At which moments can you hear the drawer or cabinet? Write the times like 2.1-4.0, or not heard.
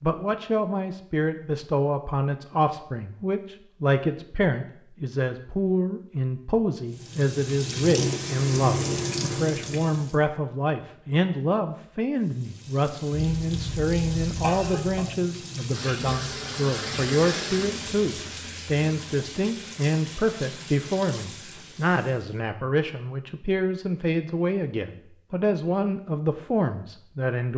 not heard.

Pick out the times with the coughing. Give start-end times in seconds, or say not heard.
13.2-15.1.